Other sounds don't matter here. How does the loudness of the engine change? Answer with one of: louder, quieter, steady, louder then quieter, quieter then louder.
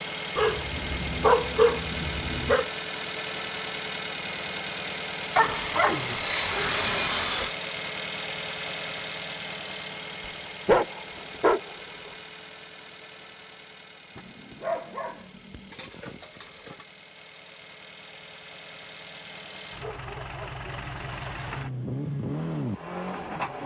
quieter then louder.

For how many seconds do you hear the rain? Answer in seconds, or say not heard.
not heard.